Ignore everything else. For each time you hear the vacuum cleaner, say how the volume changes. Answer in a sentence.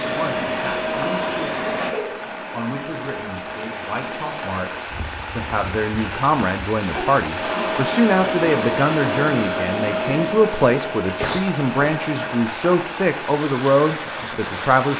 You can hear the vacuum cleaner from 0.0 to 5.0 s, getting quieter; and from 7.2 to 12.5 s, getting quieter.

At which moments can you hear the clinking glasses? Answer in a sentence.
The clinking glasses can't be heard in this clip.